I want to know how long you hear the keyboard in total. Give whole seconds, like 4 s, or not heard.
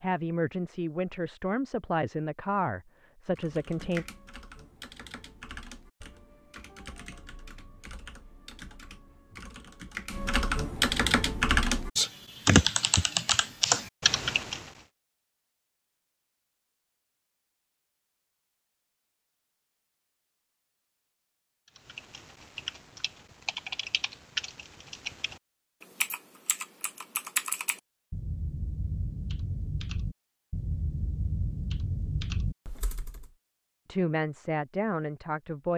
23 s.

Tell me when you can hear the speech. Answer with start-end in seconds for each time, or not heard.
0.0-4.0, 33.9-35.7.